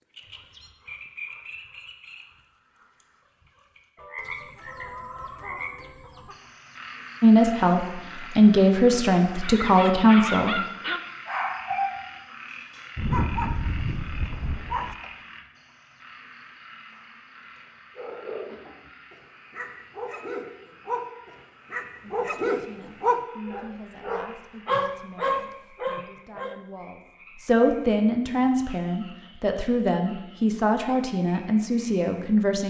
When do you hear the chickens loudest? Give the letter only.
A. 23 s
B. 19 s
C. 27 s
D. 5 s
D.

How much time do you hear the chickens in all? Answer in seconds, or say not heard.
2 s.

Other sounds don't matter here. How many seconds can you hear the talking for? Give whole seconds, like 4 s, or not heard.
14 s.